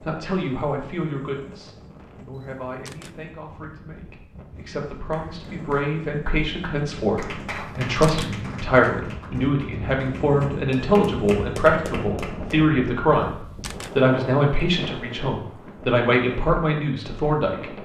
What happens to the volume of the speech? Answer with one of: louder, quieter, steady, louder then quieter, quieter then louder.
louder.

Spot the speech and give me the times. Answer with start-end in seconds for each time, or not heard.
0.0-17.8.